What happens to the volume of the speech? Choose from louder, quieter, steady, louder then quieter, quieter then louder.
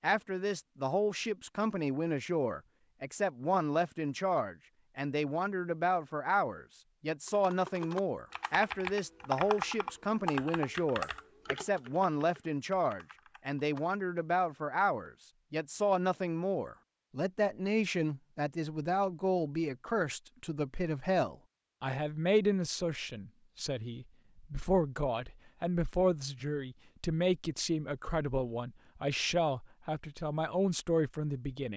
steady.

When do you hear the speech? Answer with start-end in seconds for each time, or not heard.
0.0-31.7.